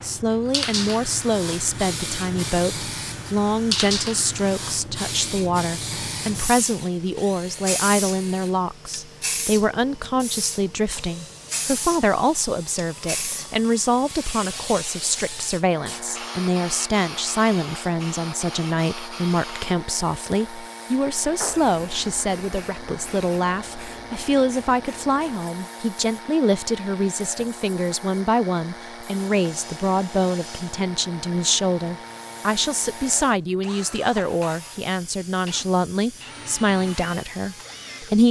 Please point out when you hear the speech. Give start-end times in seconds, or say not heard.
0.0-38.2.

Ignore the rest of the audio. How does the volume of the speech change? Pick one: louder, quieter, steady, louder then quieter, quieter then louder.
steady.